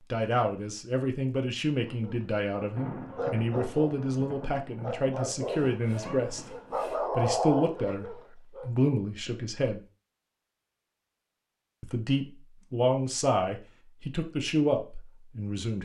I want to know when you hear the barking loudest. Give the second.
7 s.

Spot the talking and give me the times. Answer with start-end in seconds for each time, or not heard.
0.1-6.5, 7.1-9.8, 11.8-15.8.